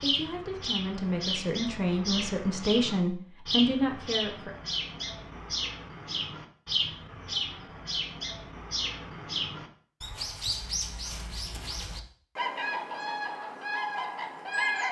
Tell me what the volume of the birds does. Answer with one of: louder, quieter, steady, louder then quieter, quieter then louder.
steady.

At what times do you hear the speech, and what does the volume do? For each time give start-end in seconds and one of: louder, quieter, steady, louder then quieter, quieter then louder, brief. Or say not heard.
0.0-4.5 louder.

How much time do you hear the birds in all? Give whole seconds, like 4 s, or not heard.
15 s.